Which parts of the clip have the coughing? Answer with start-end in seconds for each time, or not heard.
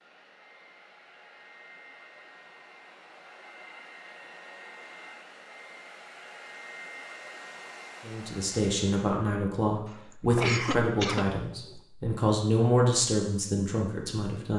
9.8-11.8.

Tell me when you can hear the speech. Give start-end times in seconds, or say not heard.
8.1-14.5.